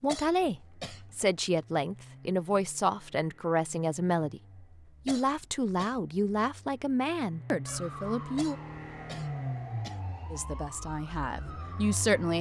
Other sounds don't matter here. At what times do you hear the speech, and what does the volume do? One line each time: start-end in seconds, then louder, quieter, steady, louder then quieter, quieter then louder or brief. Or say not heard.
0.0-8.6 steady
10.3-12.3 brief.